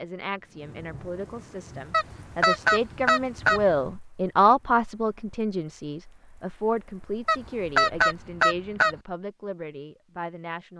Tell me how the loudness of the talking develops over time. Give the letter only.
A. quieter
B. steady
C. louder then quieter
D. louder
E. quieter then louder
C.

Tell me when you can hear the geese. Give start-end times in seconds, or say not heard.
1.9-3.6, 7.2-8.9.